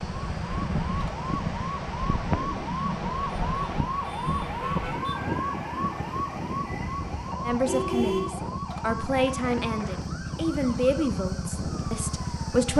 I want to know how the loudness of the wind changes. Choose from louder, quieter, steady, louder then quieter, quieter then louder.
quieter.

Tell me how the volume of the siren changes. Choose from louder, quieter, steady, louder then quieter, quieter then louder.
quieter.